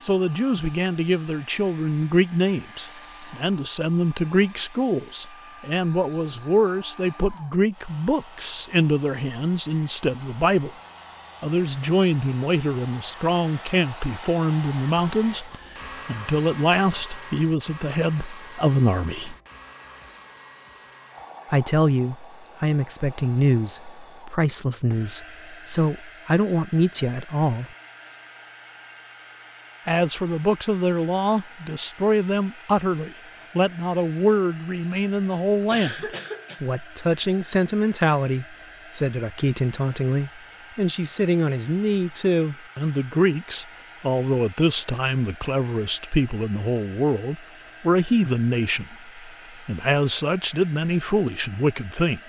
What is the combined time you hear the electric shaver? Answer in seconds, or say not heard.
not heard.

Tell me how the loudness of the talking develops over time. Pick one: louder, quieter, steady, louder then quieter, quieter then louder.
steady.